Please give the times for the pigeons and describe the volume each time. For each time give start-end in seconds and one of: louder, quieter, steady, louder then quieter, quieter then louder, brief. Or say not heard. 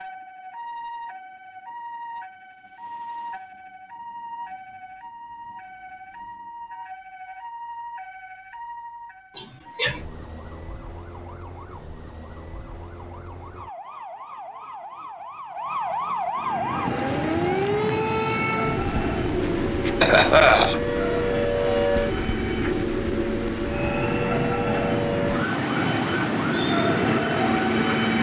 not heard.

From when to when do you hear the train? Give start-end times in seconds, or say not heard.
16.4-28.1.